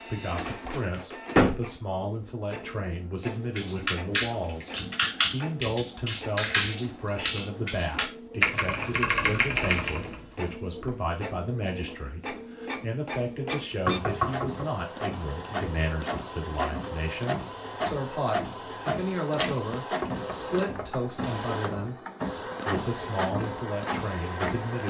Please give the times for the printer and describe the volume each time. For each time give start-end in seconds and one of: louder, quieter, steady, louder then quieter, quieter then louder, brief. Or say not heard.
0.0-24.8 louder.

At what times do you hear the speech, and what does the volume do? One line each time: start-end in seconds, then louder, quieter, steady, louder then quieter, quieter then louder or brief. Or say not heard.
0.1-24.8 steady.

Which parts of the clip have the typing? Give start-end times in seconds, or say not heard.
3.2-10.2.